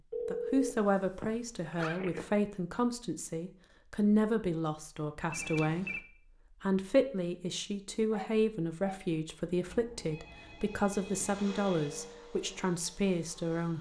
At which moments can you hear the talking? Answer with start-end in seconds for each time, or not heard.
0.2-6.0, 6.6-13.7.